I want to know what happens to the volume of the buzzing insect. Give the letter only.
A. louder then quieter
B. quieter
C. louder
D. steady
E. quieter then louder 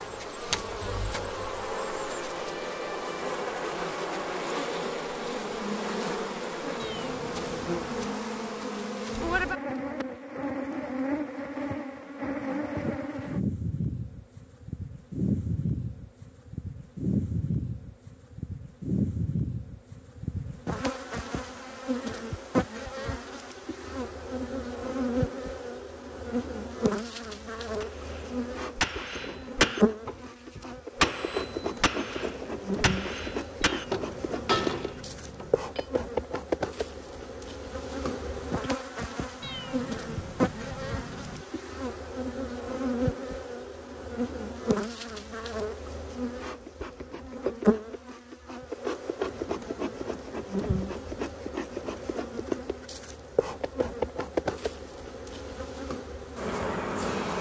D.